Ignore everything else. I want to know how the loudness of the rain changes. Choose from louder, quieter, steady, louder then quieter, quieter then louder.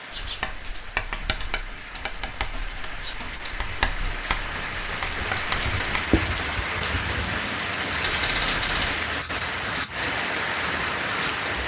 louder.